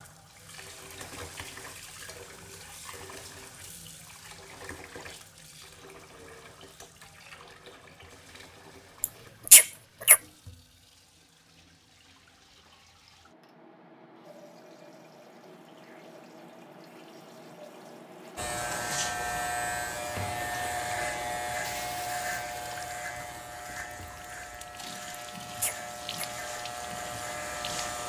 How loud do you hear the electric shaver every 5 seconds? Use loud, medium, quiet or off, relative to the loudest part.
off, off, off, loud, loud, medium.